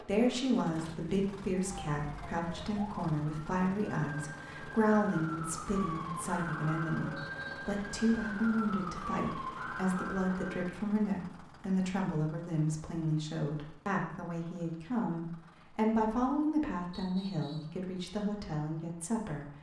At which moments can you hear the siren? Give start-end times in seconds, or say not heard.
1.6-10.8.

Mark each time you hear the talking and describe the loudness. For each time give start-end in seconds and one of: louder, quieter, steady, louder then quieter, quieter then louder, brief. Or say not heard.
0.0-19.5 steady.